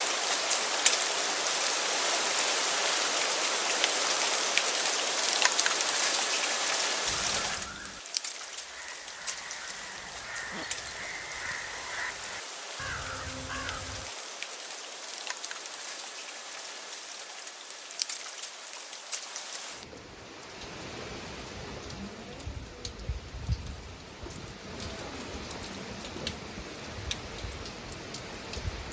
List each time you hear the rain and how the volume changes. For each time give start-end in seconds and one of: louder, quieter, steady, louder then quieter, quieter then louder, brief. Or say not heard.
0.0-28.8 quieter.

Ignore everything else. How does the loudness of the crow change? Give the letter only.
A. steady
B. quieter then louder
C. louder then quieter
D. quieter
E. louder
E.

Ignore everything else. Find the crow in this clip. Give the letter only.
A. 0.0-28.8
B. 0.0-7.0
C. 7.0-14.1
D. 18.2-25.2
C.